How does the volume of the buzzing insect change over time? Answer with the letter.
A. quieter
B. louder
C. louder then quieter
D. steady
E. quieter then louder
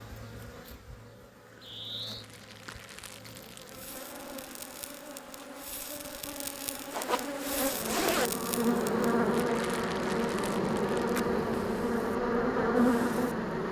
B.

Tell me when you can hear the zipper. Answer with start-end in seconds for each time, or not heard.
6.9-8.3.